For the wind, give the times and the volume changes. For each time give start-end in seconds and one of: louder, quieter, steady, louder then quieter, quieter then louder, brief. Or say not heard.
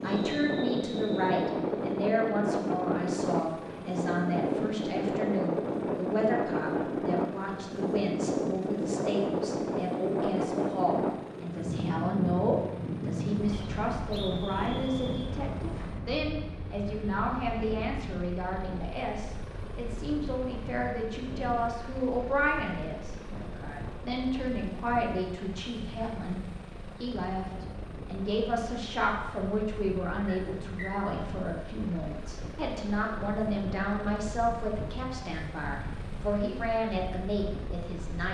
0.0-38.2 quieter.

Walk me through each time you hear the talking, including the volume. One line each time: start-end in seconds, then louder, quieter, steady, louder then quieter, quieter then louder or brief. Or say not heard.
0.0-26.4 steady
27.0-38.2 steady.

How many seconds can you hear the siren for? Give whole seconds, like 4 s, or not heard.
not heard.